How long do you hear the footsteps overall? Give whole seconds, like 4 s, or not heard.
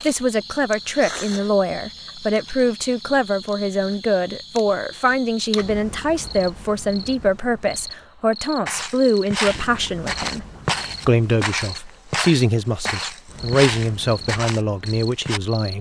7 s.